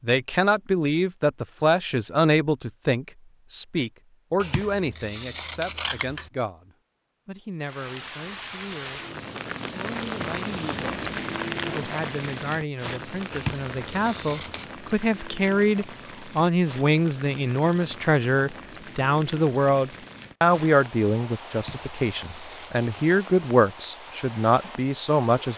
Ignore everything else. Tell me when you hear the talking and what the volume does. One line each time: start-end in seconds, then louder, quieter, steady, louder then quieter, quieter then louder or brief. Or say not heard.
0.0-9.0 quieter
9.7-10.8 brief
11.7-25.5 louder.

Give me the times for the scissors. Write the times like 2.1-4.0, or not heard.
4.4-6.3, 13.3-14.7, 21.5-23.1.